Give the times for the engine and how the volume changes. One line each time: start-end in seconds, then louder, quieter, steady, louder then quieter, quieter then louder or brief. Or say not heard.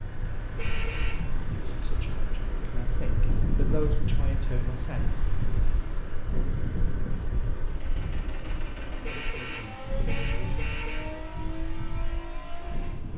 0.0-13.1 steady.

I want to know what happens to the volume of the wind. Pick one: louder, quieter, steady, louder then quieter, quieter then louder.
louder then quieter.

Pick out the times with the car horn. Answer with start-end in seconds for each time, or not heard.
0.6-1.2, 9.1-11.1.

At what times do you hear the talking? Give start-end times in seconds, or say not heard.
1.5-5.0, 9.1-11.2.